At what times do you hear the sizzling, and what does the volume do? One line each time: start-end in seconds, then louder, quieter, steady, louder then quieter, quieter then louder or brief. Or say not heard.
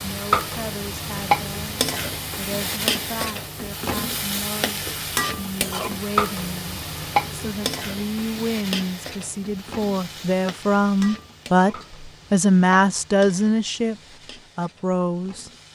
0.0-15.7 quieter.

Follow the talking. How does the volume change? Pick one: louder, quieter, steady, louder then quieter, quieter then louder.
louder.